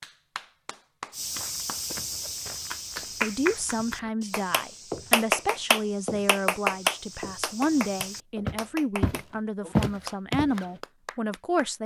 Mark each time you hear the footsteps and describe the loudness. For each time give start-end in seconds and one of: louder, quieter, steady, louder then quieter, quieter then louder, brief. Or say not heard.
1.1-10.8 quieter then louder.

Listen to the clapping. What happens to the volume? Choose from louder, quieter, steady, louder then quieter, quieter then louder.
louder then quieter.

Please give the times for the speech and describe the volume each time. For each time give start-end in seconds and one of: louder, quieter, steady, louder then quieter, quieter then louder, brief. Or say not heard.
3.2-11.8 steady.